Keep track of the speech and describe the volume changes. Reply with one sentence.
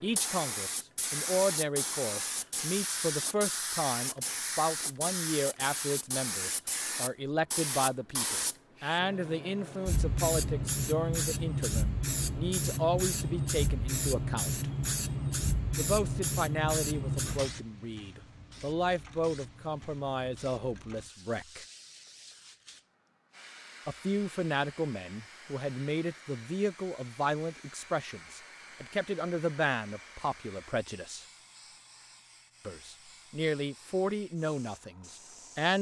The loudness of the speech stays about the same.